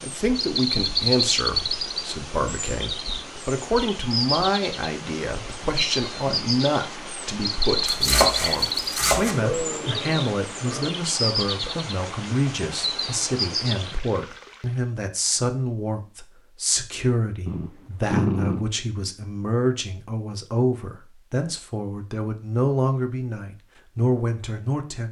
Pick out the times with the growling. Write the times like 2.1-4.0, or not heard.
5.6-6.5, 9.3-10.9, 17.4-18.6.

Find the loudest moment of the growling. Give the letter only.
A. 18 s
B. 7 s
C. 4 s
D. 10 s
A.